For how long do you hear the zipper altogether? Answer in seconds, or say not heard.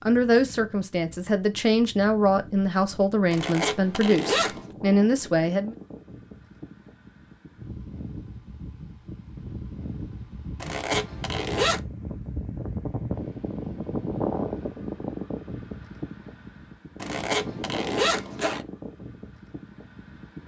4 s.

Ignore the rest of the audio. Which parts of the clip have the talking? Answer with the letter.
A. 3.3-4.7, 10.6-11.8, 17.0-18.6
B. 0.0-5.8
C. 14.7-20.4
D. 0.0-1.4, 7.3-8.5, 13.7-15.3
B.